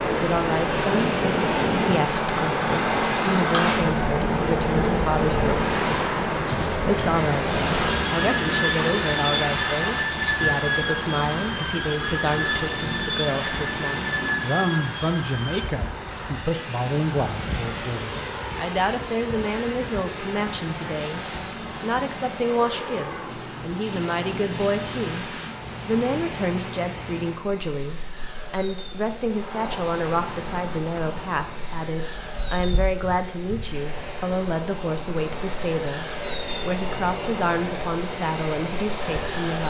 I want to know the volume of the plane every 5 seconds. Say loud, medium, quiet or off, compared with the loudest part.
loud, loud, loud, medium, medium, quiet, quiet, medium.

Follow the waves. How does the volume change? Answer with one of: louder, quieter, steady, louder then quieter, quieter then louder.
quieter.